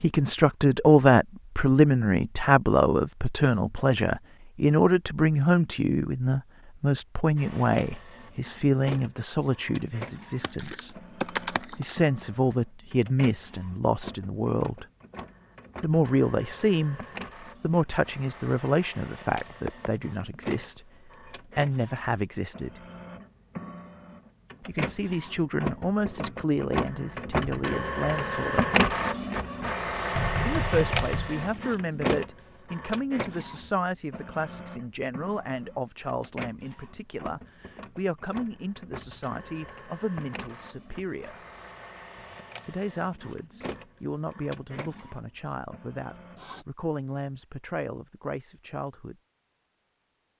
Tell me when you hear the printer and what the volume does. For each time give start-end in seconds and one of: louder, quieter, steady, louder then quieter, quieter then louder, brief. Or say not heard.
7.3-46.6 louder then quieter.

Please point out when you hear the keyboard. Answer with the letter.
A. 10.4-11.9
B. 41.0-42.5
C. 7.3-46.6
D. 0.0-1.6
A.